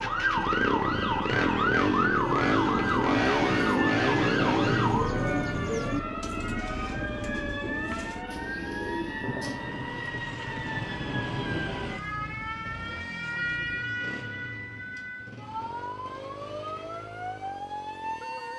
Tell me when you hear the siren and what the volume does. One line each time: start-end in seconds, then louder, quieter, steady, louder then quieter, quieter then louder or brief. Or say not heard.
0.0-18.5 quieter.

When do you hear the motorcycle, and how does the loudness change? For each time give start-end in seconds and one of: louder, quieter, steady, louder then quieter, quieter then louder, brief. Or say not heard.
0.0-18.5 quieter.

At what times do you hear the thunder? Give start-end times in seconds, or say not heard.
9.2-11.9.